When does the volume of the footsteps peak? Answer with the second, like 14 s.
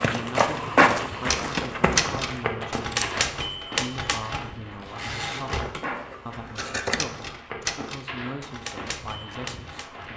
1 s.